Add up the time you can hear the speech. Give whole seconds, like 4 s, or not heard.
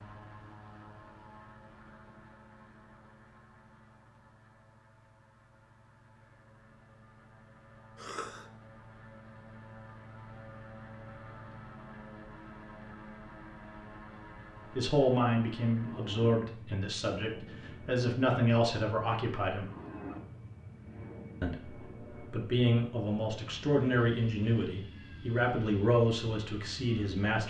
11 s.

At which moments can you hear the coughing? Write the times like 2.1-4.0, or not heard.
8.0-8.5.